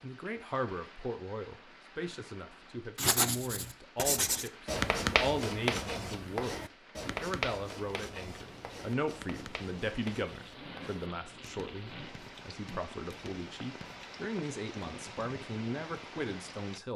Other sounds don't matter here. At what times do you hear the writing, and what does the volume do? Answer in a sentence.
The writing can be heard from 3.0 to 14.1 s, getting quieter.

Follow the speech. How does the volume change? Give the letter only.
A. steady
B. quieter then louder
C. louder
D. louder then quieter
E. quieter
A.